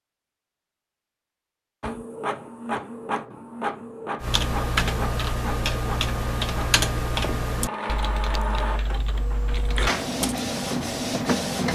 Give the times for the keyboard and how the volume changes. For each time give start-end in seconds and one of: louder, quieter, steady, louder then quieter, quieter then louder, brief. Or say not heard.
4.2-10.4 quieter.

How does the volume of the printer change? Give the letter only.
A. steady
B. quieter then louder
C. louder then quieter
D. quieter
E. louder
B.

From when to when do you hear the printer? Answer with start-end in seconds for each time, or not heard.
1.8-11.7.